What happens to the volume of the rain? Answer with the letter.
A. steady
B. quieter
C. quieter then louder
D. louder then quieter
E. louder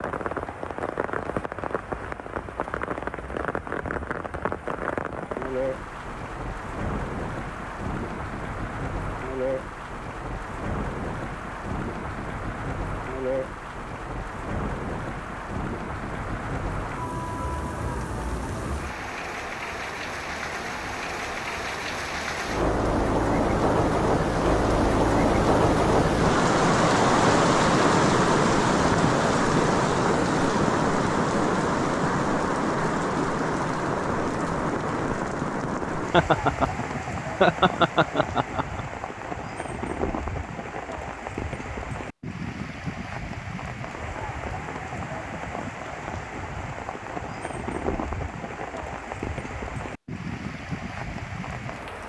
D.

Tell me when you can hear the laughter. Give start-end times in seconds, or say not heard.
36.1-38.9.